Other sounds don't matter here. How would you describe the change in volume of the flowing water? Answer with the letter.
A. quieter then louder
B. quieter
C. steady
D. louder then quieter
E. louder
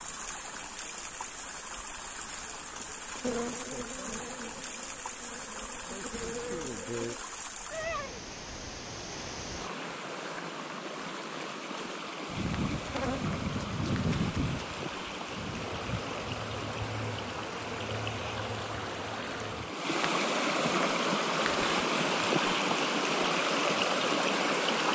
E.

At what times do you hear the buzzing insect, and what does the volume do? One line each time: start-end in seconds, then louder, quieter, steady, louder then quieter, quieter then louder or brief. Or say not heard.
3.1-7.2 quieter then louder
12.2-19.7 quieter.